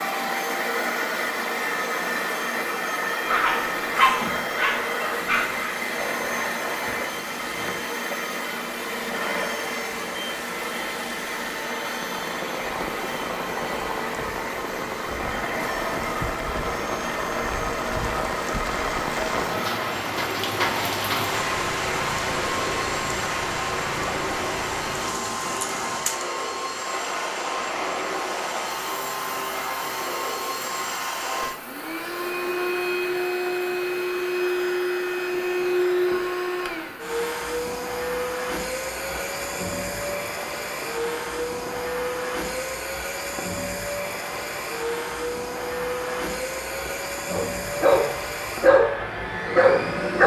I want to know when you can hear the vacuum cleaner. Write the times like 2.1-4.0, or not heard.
0.0-50.2.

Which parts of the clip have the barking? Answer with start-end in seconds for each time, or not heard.
3.2-5.7, 47.2-50.2.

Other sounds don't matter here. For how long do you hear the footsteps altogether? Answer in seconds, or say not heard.
not heard.